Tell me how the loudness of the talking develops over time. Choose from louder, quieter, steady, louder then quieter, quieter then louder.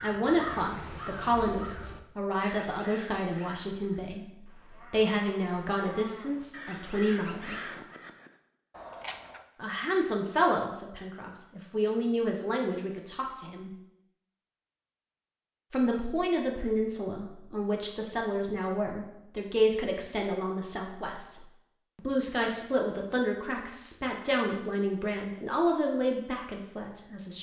steady.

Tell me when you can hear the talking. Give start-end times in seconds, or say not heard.
0.0-7.7, 9.6-13.7, 15.7-27.3.